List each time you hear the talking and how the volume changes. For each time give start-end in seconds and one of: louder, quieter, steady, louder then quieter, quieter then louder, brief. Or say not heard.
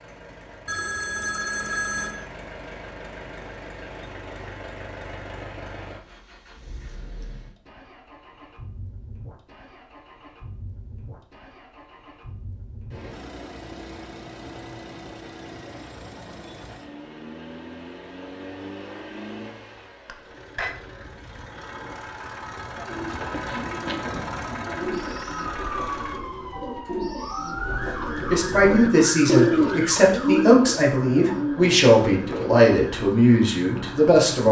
28.3-34.4 steady.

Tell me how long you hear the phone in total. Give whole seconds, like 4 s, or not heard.
2 s.